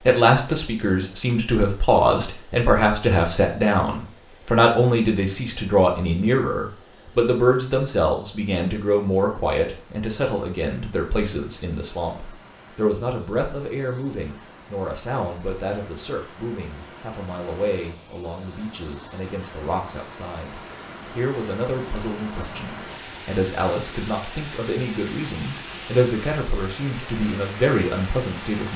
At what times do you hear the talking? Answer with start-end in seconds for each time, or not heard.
0.1-28.7.